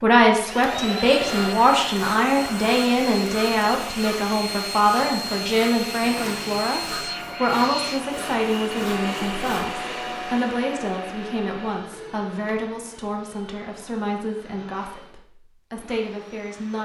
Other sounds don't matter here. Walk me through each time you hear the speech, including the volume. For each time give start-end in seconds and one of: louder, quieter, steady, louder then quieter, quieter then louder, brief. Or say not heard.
0.0-16.7 quieter.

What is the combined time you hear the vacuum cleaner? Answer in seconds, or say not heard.
17 s.